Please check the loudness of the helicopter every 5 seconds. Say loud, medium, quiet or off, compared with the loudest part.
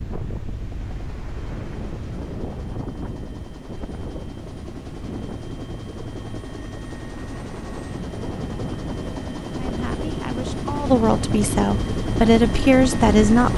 quiet, medium, loud.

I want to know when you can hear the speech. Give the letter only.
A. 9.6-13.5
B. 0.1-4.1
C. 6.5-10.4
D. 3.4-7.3
A.